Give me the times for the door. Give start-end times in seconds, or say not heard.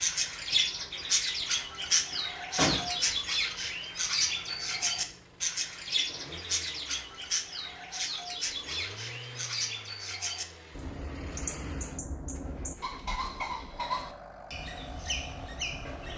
2.5-3.0.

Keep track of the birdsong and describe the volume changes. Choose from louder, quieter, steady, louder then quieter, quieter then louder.
quieter.